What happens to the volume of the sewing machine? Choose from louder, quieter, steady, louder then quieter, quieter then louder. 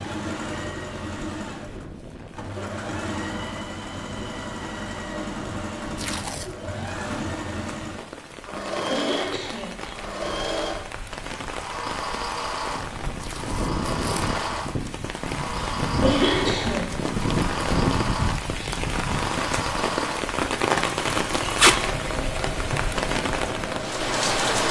steady.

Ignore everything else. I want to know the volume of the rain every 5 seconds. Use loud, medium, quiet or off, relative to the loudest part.
quiet, quiet, medium, loud, loud.